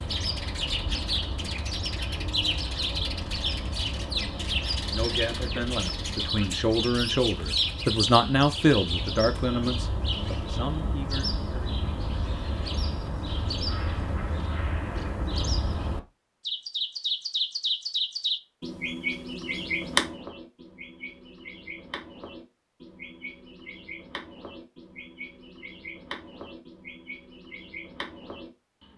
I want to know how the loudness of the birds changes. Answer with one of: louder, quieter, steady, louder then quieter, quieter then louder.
quieter.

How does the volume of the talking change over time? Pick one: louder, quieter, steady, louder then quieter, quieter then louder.
louder then quieter.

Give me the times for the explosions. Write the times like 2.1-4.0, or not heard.
not heard.